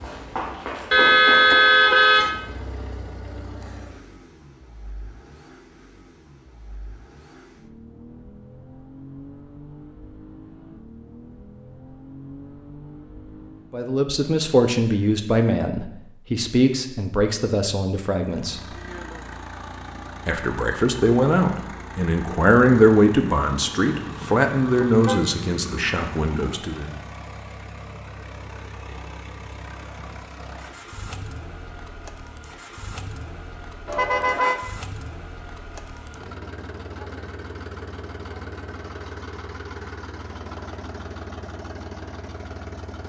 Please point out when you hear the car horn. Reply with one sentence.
The car horn can be heard from 0.9 to 2.4 s, from 23.9 to 25.5 s and from 33.9 to 34.5 s.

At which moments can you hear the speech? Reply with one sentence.
The speech can be heard from 13.7 to 18.7 s and from 20.2 to 26.9 s.